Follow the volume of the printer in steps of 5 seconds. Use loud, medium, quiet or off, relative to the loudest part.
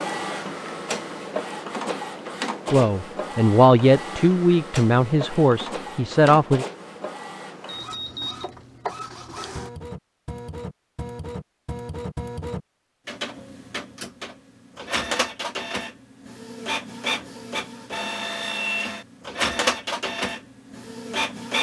loud, medium, medium, loud, loud.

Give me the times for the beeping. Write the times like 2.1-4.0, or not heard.
7.7-8.5.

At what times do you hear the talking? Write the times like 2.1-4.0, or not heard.
2.7-6.7.